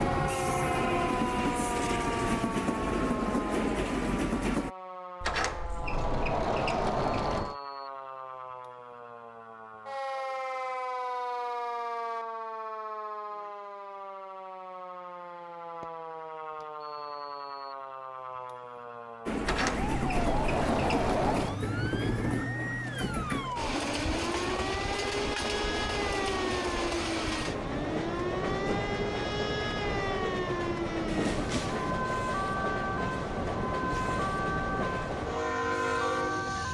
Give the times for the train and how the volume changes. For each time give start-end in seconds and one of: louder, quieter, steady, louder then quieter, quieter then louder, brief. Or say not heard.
0.0-4.7 steady
19.2-36.6 steady.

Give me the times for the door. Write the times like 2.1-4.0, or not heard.
5.2-7.5, 19.4-21.6, 31.1-31.9.